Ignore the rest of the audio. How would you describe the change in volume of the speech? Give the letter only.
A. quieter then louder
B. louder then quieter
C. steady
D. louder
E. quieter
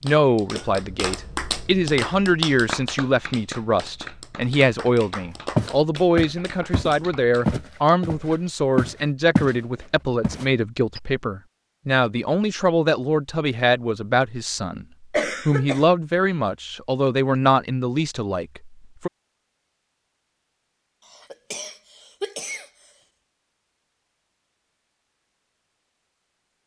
C.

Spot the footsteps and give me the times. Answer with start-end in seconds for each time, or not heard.
5.5-9.6, 10.2-11.0.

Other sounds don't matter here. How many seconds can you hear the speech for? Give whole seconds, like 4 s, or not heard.
19 s.